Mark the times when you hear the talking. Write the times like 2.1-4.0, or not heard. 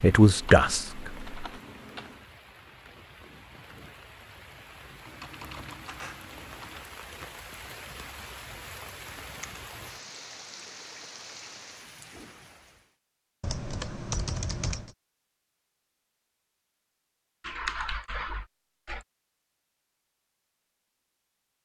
0.0-1.3.